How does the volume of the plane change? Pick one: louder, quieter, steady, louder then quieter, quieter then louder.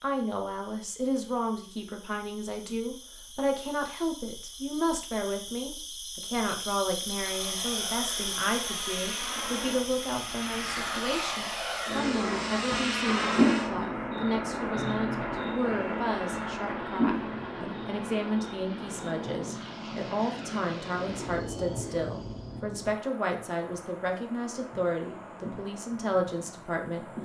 louder then quieter.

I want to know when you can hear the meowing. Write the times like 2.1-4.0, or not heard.
not heard.